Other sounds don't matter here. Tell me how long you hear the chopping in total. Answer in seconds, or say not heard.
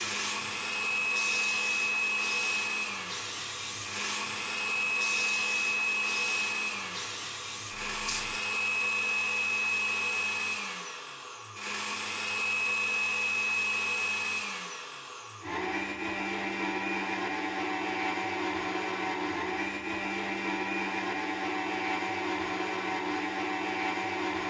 not heard.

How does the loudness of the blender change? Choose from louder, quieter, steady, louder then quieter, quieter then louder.
steady.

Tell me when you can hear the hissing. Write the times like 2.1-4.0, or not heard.
0.0-8.4.